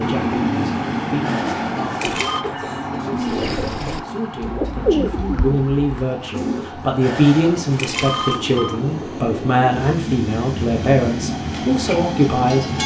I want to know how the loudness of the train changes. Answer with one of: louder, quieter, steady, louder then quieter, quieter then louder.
quieter then louder.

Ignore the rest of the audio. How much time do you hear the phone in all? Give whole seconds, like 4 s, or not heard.
3 s.